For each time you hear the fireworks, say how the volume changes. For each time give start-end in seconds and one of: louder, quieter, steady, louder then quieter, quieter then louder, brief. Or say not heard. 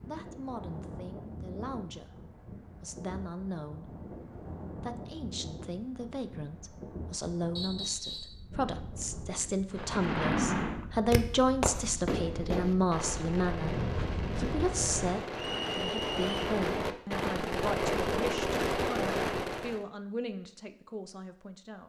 9.7-19.8 quieter then louder.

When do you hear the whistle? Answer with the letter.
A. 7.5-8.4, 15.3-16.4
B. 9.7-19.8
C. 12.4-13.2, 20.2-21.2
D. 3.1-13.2
A.